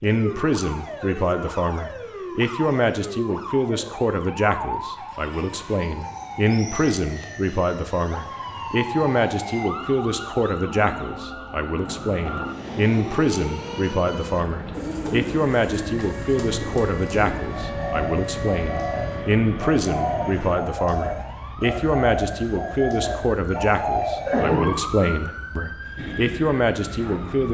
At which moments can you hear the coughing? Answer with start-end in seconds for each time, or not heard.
24.0-24.7.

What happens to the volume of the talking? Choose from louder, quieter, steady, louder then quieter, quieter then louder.
steady.